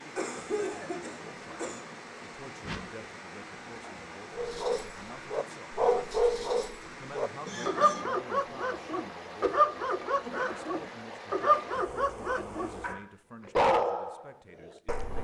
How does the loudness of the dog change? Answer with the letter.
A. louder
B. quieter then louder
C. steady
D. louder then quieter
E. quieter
C.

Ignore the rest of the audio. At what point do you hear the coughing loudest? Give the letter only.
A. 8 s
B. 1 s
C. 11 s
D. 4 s
B.